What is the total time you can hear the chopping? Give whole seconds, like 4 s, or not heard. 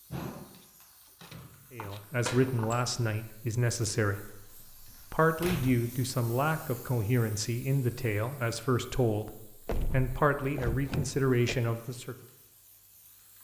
3 s.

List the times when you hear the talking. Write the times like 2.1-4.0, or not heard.
1.7-12.2.